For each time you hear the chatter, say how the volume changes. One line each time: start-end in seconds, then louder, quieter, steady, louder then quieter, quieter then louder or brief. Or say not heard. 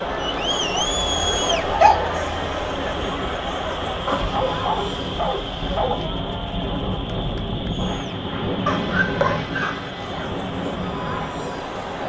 0.0-12.0 quieter then louder.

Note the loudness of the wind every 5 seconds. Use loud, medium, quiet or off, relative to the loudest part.
medium, loud, loud.